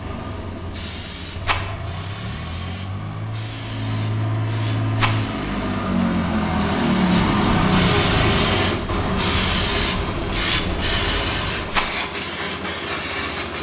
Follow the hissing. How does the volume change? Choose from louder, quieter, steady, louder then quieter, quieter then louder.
louder.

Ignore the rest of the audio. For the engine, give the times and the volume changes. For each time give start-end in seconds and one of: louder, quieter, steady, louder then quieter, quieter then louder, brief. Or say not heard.
0.0-13.5 louder then quieter.